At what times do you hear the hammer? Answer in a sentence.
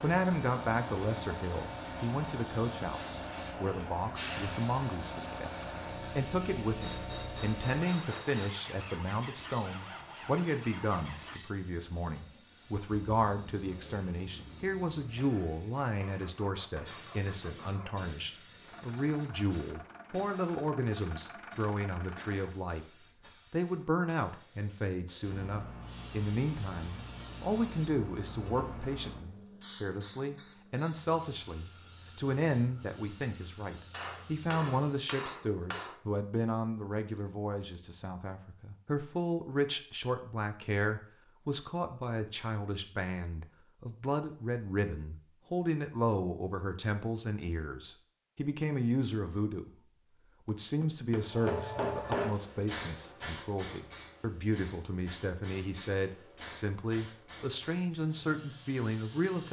You can hear the hammer from 6.8 to 8.6 s, from 15.2 to 17.1 s, from 33.9 to 36.0 s and from 50.5 to 52.4 s.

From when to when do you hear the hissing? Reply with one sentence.
You can hear the hissing from 0.0 to 35.0 s and from 51.2 to 59.4 s.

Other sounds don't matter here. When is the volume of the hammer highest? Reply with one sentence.
The volume of the hammer peaks at 52 seconds.